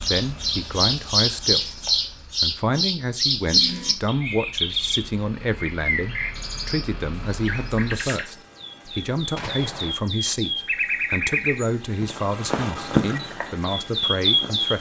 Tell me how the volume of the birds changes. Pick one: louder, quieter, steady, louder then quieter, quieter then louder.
quieter then louder.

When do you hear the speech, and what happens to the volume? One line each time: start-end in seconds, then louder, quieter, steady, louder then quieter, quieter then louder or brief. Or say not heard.
0.0-14.7 steady.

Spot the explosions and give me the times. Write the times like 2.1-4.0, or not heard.
9.3-9.9.